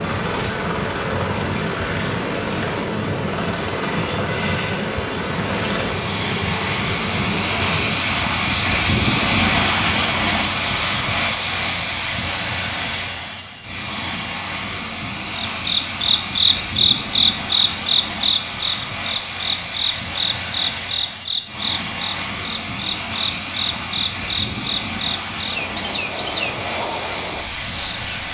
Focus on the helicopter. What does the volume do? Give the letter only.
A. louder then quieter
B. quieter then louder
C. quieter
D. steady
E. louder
A.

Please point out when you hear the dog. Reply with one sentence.
You can't hear the dog here.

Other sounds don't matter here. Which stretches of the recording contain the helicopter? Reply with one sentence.
You can hear the helicopter from 0.0 to 28.3 s.